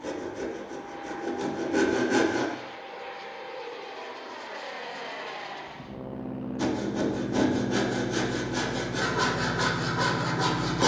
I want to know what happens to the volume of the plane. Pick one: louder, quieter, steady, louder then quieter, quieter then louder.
louder.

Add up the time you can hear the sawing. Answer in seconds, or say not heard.
7 s.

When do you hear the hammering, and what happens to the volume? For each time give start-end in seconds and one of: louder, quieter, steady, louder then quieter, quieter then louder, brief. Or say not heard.
not heard.